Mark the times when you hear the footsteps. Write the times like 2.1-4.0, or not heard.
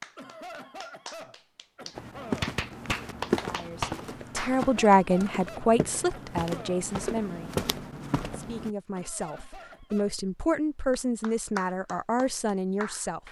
1.9-8.7.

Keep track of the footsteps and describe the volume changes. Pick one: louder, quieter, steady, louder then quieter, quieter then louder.
quieter then louder.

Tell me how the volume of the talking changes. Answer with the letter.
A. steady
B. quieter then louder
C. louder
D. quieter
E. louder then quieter
B.